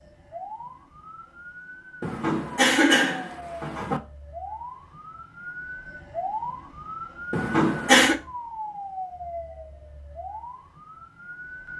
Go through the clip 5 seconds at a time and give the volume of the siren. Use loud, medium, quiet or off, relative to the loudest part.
medium, loud, medium.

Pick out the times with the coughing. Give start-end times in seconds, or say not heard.
2.0-4.0, 7.3-8.2.